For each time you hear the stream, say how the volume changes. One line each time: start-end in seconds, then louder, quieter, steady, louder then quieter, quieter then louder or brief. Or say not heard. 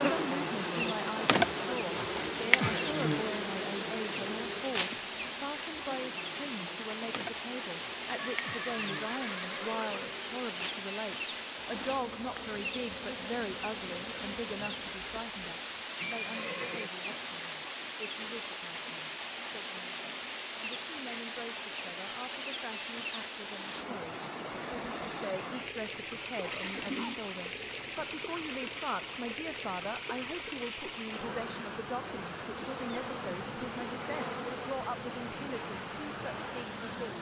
0.0-37.1 steady.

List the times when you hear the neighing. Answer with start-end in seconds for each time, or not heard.
8.2-10.2, 15.9-16.9, 26.5-28.4.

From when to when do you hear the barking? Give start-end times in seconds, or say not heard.
26.4-27.2.